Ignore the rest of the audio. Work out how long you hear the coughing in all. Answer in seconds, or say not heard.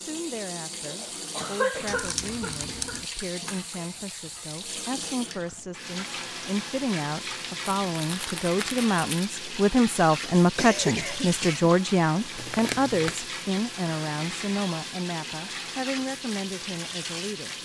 3 s.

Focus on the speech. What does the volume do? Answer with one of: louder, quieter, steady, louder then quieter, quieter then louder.
louder then quieter.